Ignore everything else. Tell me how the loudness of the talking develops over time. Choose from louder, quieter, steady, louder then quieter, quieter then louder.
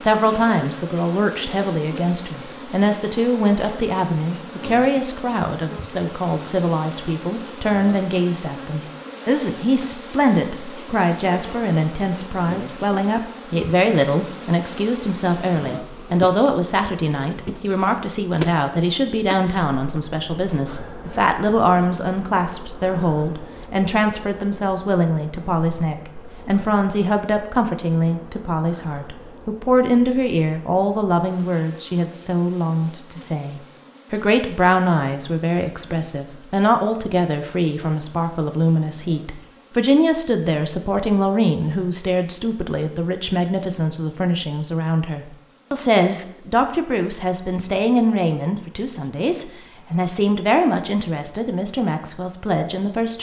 steady.